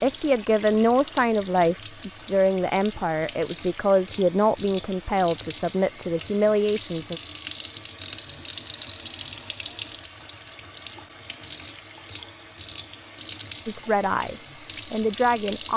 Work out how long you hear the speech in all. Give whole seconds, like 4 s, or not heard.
9 s.